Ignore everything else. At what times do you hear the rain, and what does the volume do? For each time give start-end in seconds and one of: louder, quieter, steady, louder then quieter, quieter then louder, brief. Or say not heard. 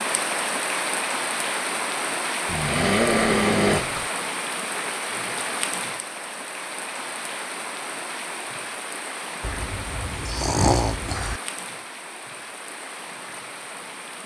0.0-14.2 quieter.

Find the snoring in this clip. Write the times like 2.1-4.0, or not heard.
2.5-4.1, 9.4-11.4.